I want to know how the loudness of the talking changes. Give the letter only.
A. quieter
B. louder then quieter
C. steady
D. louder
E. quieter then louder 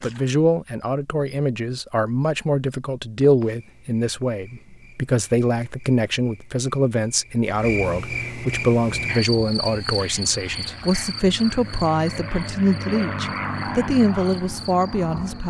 C.